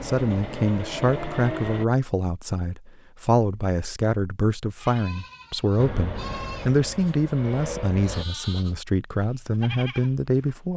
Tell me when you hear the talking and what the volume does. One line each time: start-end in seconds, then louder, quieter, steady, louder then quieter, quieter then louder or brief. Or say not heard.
0.0-10.7 steady.